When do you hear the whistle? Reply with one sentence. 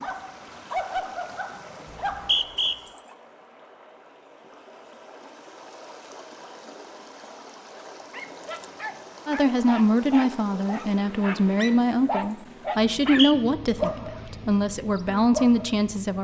The whistle can be heard from 1.9 to 2.8 s and from 12.8 to 13.3 s.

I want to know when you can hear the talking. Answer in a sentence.
You can hear the talking from 9.2 to 16.2 s.